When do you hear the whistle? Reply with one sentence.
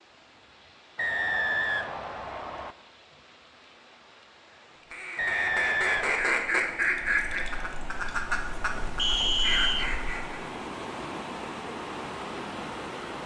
You can hear the whistle from 0.9 to 2.8 s, from 5.2 to 6.3 s and from 8.9 to 9.9 s.